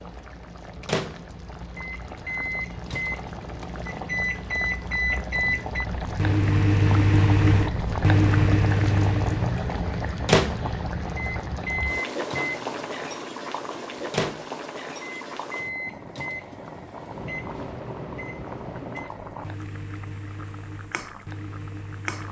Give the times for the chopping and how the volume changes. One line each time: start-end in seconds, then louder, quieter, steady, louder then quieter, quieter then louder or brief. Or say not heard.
not heard.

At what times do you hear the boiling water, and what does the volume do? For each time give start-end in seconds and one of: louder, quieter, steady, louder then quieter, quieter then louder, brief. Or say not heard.
0.0-22.2 louder then quieter.